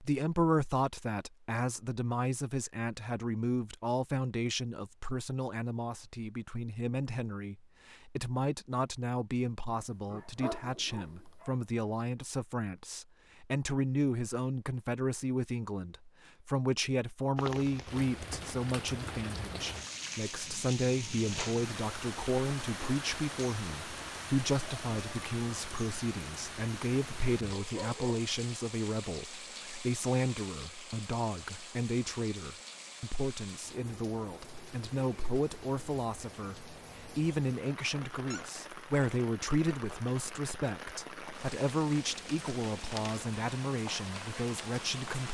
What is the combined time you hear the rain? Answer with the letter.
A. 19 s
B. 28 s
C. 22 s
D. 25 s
B.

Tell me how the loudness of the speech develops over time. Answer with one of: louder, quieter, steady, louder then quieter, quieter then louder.
steady.